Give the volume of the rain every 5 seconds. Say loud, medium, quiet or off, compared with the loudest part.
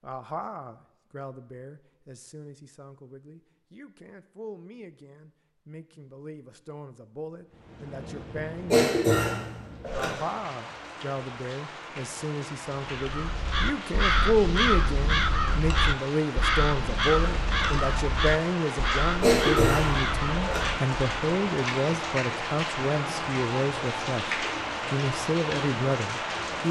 off, quiet, medium, loud, loud, loud.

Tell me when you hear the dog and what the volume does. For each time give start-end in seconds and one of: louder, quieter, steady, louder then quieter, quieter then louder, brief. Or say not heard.
not heard.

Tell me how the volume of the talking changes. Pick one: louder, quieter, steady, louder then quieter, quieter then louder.
louder.